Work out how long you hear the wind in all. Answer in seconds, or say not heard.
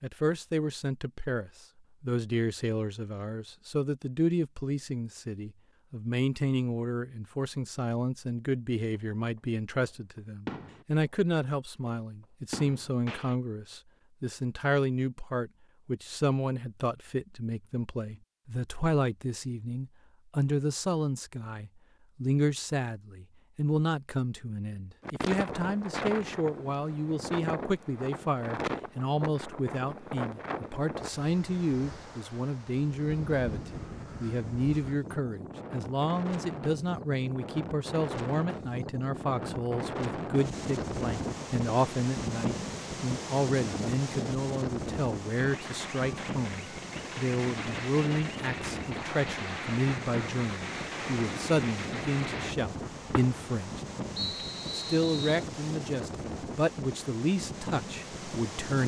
34 s.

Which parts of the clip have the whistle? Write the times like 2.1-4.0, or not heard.
54.1-55.4.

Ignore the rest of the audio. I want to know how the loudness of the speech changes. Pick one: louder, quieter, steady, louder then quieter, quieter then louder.
steady.